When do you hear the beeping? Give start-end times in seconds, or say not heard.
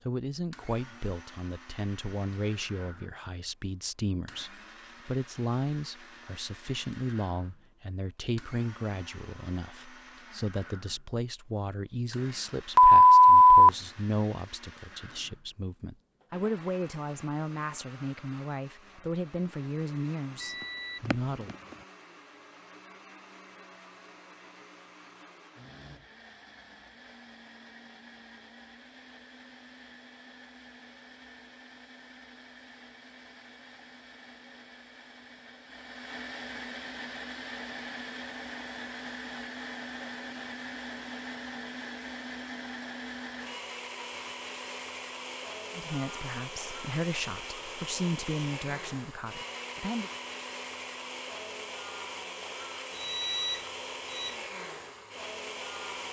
12.8-13.7, 20.4-21.6, 53.0-54.4.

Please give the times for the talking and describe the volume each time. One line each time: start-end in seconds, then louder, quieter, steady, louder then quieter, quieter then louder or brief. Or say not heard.
0.1-21.5 steady
45.8-50.1 louder then quieter.